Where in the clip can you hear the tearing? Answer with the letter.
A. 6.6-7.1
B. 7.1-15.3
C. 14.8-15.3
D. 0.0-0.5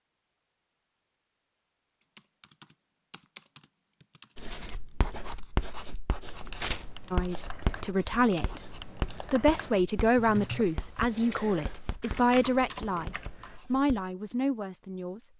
A.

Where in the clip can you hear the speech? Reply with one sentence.
You can hear the speech from 7.1 to 15.3 s.